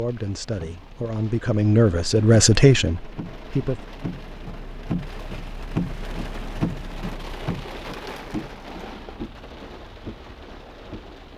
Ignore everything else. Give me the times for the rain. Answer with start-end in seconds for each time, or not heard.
0.0-11.3.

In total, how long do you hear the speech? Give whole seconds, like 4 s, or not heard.
4 s.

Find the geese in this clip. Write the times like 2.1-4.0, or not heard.
not heard.